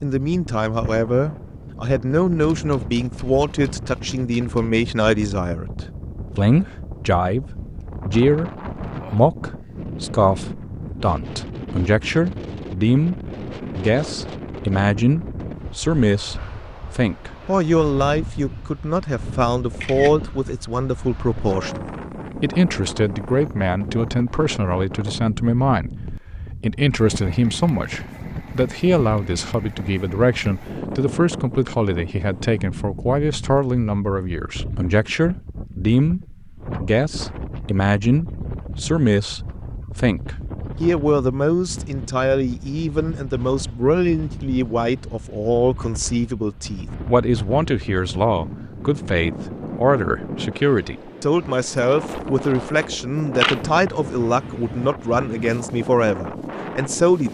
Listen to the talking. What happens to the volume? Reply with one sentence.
The volume of the talking stays about the same.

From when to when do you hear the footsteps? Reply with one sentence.
The footsteps can't be heard in this clip.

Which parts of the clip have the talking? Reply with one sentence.
The talking can be heard from 0.0 to 57.2 s.